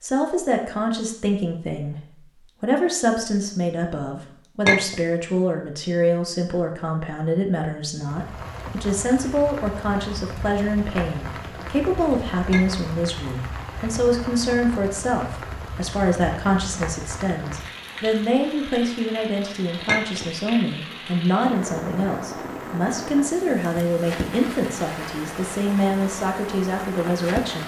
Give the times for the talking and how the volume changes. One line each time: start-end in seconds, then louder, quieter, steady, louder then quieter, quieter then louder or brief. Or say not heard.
0.0-27.6 steady.